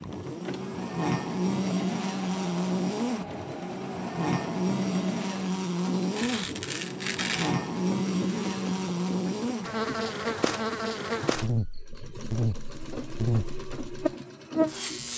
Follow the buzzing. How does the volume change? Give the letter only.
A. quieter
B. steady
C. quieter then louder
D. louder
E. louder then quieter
B.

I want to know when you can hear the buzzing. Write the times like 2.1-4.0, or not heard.
0.0-15.1.